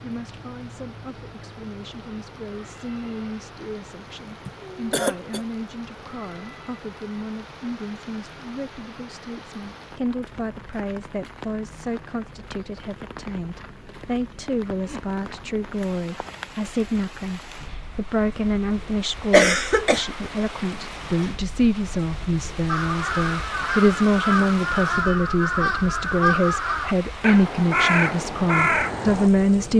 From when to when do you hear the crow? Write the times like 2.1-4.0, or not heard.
22.6-29.3.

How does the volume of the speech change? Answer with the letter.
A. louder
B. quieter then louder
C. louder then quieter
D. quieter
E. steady
A.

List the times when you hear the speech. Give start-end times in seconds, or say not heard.
0.0-29.7.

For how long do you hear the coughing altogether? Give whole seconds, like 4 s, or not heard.
2 s.